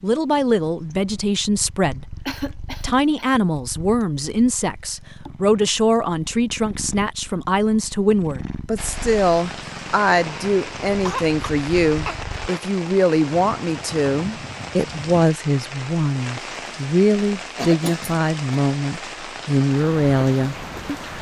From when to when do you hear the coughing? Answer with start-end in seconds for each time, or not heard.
2.2-3.3, 10.8-12.2, 17.6-18.6.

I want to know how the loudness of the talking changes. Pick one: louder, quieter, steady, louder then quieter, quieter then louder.
steady.